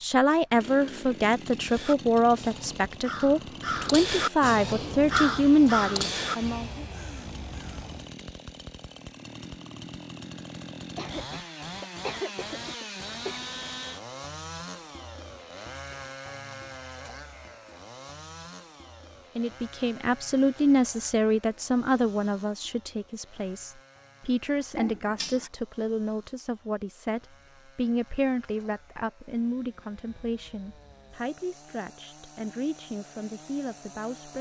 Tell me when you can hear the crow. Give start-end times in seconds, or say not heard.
1.6-8.2.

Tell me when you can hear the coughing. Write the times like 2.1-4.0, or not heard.
10.8-13.4, 24.8-25.5.